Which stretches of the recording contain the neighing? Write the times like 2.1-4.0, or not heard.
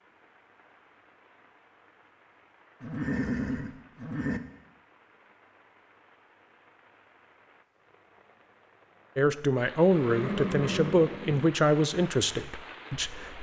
2.8-4.4, 9.9-11.4.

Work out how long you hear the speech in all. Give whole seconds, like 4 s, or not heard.
4 s.